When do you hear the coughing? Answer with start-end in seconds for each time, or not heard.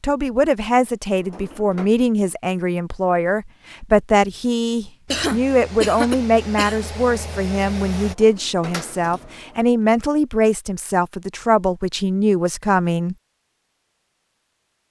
5.1-6.9.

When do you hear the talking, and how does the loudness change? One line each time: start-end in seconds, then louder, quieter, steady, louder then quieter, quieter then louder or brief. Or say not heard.
0.0-13.2 steady.